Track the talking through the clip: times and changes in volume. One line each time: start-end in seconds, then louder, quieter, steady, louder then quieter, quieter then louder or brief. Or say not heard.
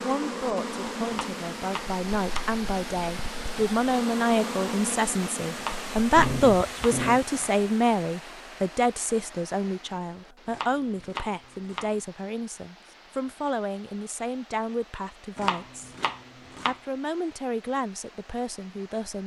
0.0-15.9 louder then quieter
16.6-19.2 brief.